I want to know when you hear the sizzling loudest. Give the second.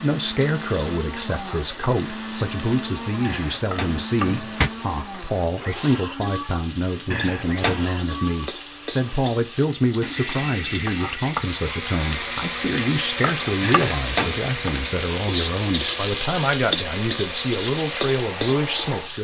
16 s.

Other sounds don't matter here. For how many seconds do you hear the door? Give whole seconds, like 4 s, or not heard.
3 s.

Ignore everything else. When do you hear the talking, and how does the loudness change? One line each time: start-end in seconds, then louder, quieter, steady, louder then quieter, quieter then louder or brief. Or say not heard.
0.0-19.1 steady.